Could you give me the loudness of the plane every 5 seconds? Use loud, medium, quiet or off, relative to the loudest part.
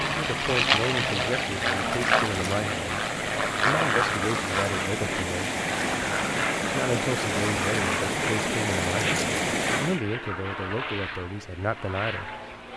loud, medium, medium.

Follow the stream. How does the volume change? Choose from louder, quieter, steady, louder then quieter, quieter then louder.
louder.